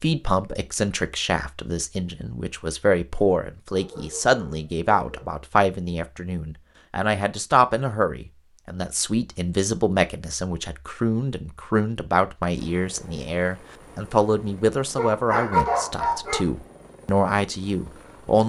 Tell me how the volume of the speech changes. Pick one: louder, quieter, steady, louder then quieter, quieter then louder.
steady.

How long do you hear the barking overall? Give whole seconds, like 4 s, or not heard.
3 s.